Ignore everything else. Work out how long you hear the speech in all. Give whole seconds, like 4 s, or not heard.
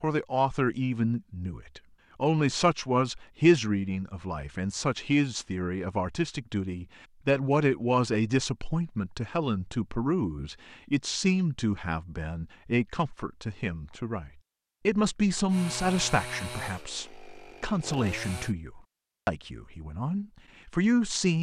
21 s.